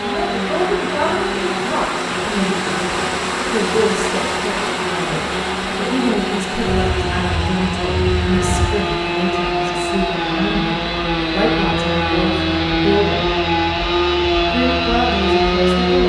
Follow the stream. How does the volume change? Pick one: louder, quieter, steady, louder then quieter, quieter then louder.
quieter.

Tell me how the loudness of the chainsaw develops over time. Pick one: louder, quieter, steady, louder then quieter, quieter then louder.
louder.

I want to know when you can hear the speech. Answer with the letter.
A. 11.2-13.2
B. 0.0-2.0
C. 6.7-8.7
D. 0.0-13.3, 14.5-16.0
D.